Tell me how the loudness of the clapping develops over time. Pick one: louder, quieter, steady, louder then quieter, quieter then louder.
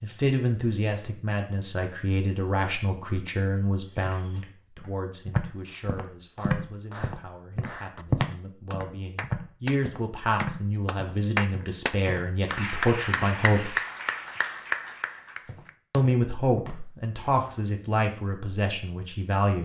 louder.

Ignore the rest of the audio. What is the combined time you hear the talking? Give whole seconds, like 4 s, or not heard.
17 s.